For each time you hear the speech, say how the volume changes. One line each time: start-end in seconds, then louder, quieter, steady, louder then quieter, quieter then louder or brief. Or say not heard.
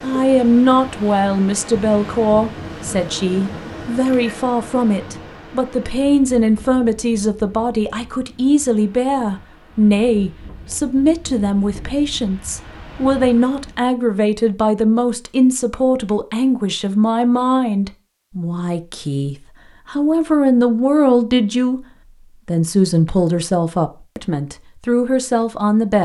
0.0-26.0 steady.